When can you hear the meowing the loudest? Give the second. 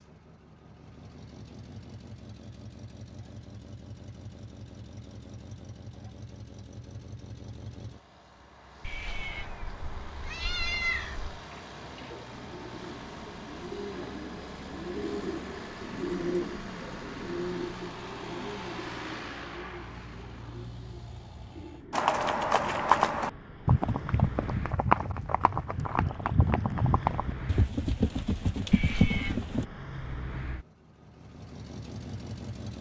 11 s.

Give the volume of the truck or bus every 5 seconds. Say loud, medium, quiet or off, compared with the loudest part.
medium, medium, loud, loud, loud, loud, loud.